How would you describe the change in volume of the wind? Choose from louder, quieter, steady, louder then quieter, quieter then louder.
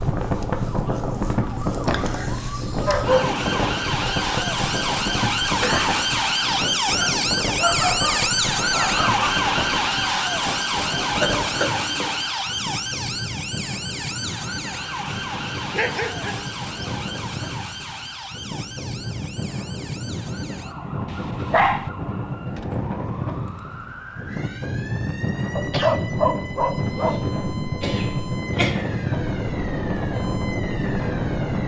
quieter then louder.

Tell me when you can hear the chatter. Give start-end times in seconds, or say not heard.
not heard.